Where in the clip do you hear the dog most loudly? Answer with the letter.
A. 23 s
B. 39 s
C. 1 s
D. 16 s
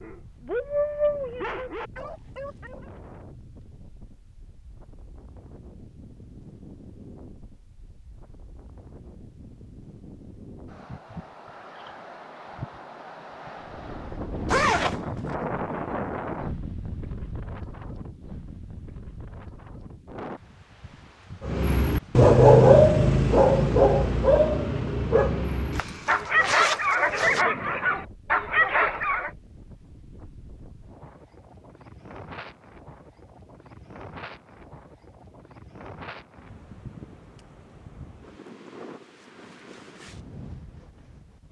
A.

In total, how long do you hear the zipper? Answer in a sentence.
You can hear the zipper for 3 seconds altogether.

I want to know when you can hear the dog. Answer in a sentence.
You can hear the dog from 0.0 to 2.9 s and from 21.4 to 29.3 s.